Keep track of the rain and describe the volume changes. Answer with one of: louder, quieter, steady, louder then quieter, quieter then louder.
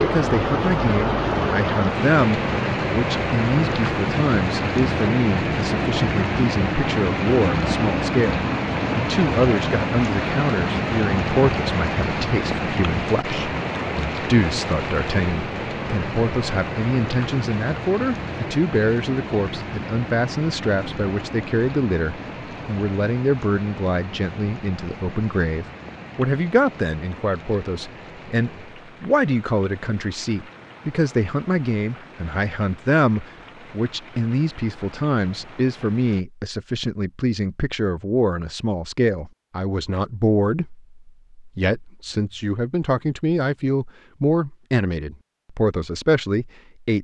quieter.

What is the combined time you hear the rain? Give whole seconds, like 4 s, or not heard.
36 s.